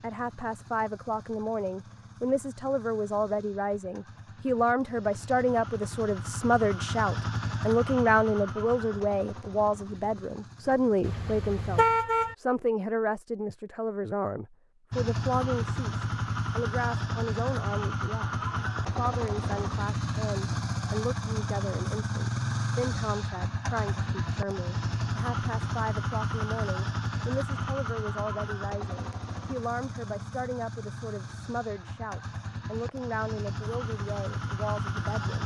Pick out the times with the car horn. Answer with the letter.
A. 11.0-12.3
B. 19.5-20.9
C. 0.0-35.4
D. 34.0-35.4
A.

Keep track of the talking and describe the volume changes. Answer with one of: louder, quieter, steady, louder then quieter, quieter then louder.
quieter.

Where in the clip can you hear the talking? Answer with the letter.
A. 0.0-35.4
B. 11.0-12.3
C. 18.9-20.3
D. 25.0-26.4
A.